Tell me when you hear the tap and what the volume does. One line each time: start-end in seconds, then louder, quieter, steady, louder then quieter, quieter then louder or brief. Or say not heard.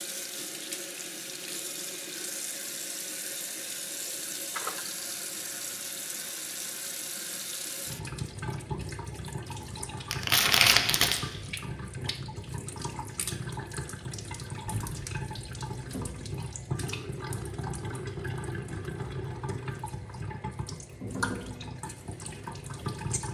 0.0-23.2 steady.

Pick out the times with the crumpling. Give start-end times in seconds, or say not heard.
10.1-11.2.